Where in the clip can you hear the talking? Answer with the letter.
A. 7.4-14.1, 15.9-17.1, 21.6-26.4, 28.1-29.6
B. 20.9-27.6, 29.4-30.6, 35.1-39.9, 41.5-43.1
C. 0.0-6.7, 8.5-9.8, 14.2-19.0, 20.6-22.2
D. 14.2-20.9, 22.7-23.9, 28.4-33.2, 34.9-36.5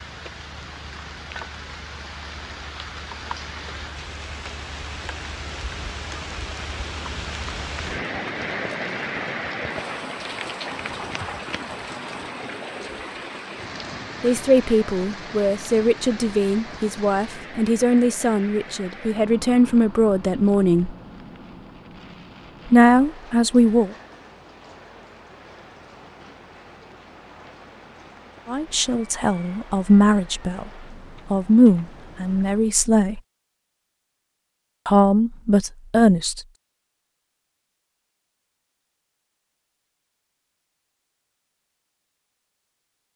D.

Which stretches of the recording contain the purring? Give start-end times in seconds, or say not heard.
not heard.